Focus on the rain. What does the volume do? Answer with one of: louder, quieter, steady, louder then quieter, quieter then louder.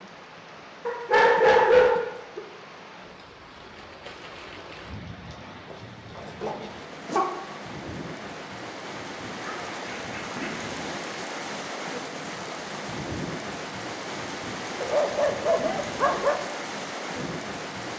louder.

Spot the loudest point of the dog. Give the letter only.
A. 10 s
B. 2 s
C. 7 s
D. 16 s
B.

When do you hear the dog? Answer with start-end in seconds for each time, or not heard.
0.8-2.4, 5.7-7.3, 9.3-10.6, 14.8-16.4.